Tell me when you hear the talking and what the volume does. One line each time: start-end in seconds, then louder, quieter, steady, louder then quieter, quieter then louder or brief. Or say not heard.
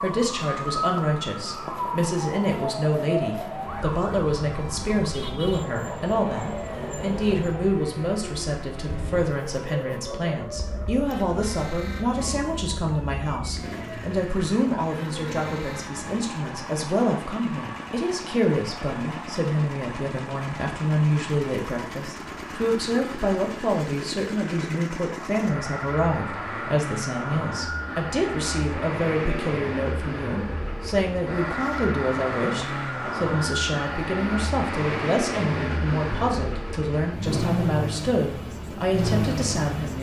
0.0-39.9 steady.